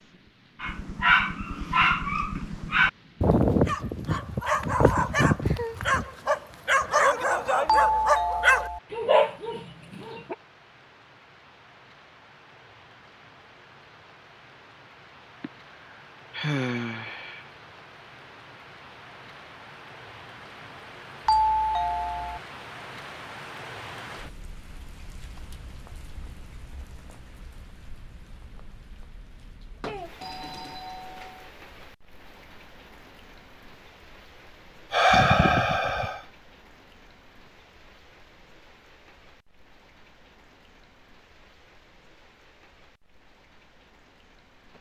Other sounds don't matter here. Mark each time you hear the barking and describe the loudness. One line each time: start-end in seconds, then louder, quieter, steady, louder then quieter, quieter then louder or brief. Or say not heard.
0.6-10.3 steady.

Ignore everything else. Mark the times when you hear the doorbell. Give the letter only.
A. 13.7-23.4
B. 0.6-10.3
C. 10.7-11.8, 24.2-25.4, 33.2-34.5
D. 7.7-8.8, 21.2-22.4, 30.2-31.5
D.